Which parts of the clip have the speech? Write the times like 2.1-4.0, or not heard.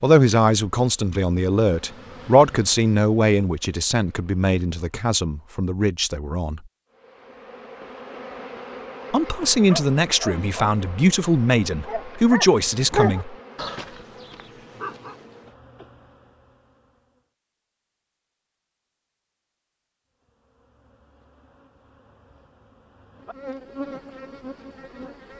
0.0-6.6, 9.1-13.3.